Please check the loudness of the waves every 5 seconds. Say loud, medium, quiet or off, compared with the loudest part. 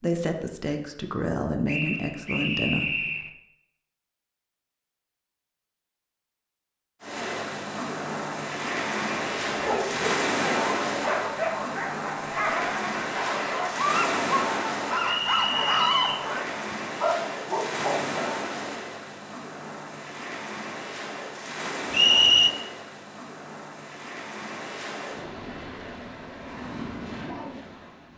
off, loud, loud, medium, medium, medium.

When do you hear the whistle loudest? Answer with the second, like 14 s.
22 s.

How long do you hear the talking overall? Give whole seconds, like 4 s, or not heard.
3 s.